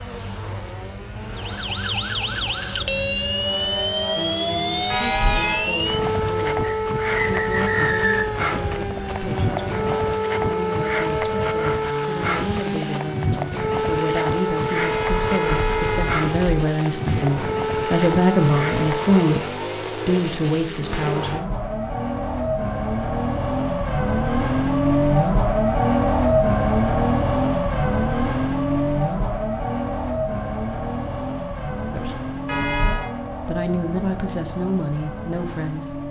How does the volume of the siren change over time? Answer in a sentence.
The volume of the siren stays about the same.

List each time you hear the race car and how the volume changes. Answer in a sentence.
You can hear the race car from 0.0 to 36.0 s, getting louder then quieter.